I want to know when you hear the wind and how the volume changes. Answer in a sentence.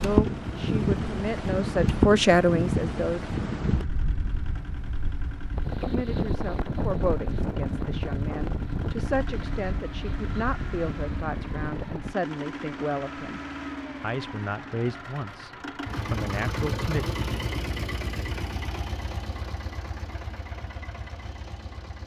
You can hear the wind from 0.0 to 12.2 s, getting quieter.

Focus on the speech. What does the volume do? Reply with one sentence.
The loudness of the speech goes down.